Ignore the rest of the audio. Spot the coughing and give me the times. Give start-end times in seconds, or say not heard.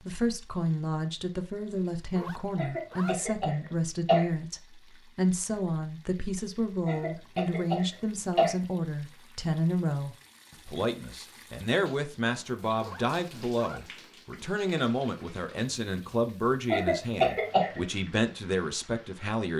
2.5-4.2, 6.8-8.5, 16.7-17.8.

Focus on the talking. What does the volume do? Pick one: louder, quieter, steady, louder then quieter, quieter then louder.
steady.